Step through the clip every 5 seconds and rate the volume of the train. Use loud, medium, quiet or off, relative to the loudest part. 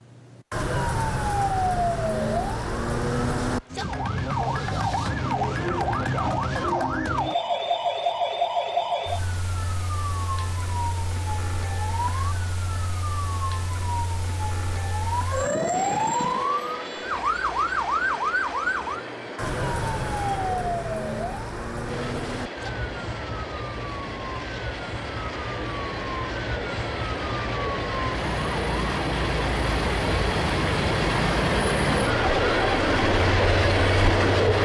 off, off, off, quiet, quiet, medium, loud.